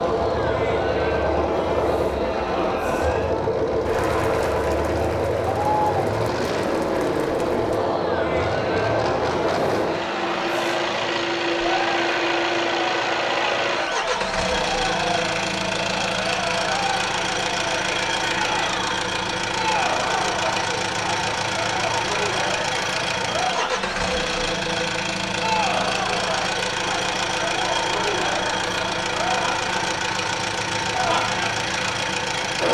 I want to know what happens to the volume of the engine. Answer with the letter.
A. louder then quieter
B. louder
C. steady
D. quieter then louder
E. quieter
C.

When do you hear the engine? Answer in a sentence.
You can hear the engine from 0.0 to 32.6 s.